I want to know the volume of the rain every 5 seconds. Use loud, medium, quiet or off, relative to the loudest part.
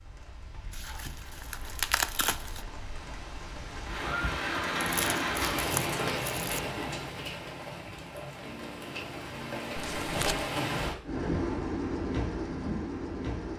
medium, loud, loud.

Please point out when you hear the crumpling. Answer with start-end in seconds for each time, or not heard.
0.7-2.6, 4.8-6.6, 9.8-10.5.